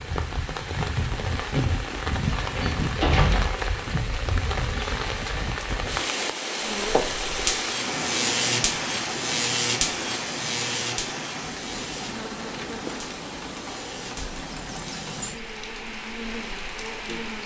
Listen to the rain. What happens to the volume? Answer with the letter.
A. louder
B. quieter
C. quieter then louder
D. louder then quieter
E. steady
B.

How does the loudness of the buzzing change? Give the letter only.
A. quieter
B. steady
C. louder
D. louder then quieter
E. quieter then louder
A.